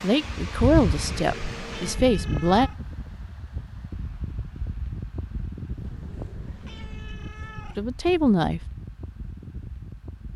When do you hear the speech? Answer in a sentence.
You can hear the speech from 0.0 to 2.7 s and from 7.8 to 8.6 s.